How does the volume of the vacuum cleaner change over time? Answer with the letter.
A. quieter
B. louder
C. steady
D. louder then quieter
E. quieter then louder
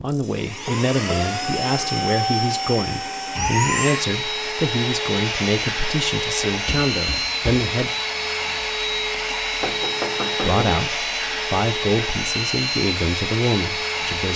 C.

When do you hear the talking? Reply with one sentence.
The talking can be heard from 0.0 to 7.9 s and from 10.4 to 14.3 s.